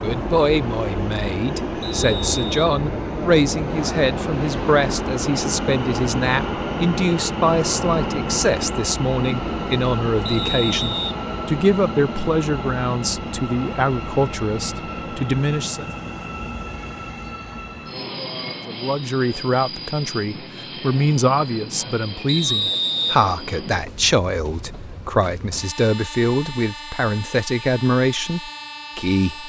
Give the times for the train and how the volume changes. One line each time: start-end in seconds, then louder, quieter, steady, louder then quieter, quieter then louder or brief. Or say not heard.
0.0-29.4 quieter.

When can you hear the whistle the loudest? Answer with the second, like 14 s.
23 s.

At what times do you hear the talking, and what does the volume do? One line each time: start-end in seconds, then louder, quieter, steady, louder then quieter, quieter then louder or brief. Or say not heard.
0.0-15.9 steady
18.6-29.4 steady.